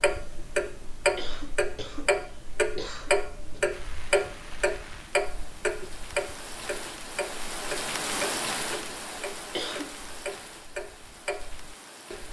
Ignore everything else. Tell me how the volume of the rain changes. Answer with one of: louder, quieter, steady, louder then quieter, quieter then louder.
louder then quieter.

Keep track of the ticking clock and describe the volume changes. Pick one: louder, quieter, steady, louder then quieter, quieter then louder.
quieter.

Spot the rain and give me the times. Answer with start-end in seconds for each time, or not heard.
3.7-12.2.